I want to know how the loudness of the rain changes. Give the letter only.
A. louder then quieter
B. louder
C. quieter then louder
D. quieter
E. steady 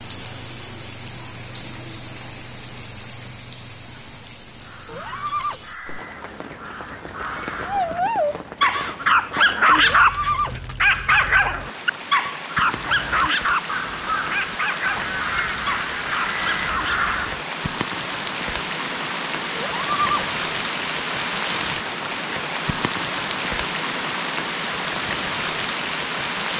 B.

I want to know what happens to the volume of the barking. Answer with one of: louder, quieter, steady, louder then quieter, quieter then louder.
quieter.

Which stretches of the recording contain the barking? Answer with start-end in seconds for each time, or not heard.
7.6-17.1.